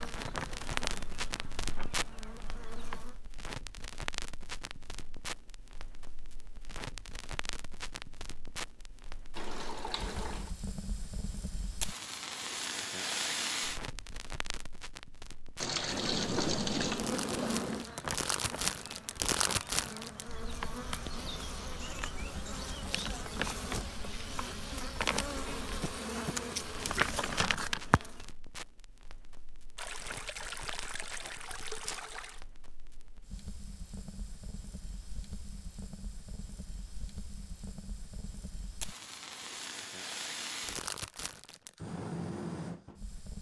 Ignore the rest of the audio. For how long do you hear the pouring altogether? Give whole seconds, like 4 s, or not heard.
5 s.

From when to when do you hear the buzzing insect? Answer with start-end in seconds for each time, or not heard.
0.0-3.1, 15.7-28.2.